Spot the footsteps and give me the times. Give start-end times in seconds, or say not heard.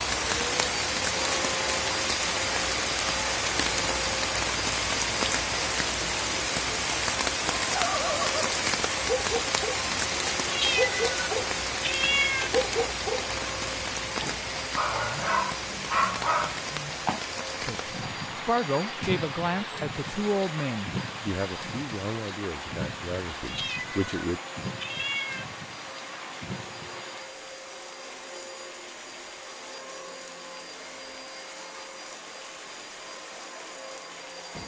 not heard.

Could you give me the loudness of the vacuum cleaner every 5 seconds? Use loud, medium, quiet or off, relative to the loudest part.
loud, loud, medium, medium, medium, medium, medium.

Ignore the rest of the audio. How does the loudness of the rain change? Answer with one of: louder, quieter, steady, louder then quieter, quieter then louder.
quieter.